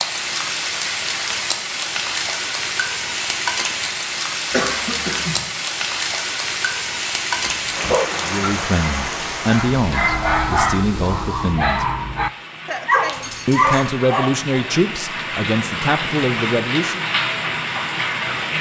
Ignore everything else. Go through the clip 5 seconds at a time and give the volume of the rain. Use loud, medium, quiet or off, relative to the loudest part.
loud, loud, medium, loud.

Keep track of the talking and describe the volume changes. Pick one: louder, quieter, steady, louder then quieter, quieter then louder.
steady.